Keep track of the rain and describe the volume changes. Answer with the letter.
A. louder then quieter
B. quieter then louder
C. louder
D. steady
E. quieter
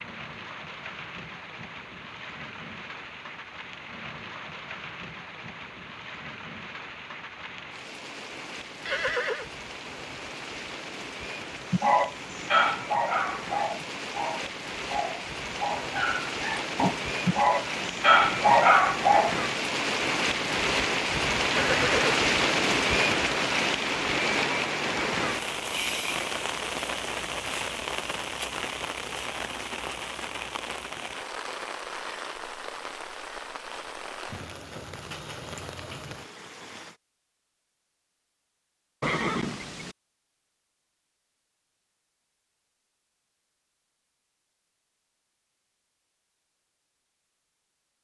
A.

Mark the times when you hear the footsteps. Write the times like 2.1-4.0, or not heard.
not heard.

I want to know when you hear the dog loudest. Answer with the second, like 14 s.
19 s.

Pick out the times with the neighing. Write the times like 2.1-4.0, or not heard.
8.8-9.4, 21.5-22.0, 39.0-40.0.